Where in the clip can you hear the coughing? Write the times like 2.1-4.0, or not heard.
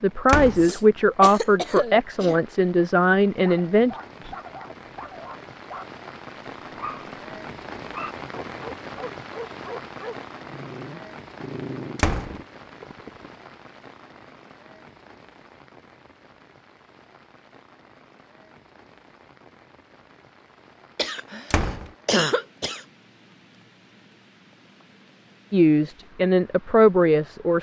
0.6-2.4, 20.9-22.8.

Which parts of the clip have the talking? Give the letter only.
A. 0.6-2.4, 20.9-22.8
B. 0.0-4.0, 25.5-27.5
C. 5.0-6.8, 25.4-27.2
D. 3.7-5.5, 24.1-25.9
B.